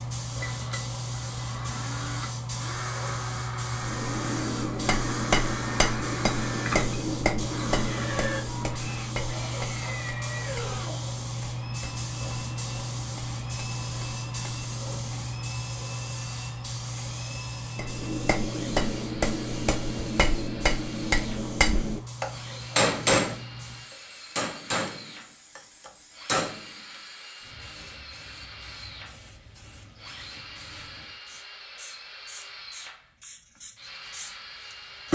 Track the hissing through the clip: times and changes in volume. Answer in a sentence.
The hissing can be heard from 0.0 to 35.1 s, getting quieter.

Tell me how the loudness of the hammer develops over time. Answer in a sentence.
The loudness of the hammer goes down, then up.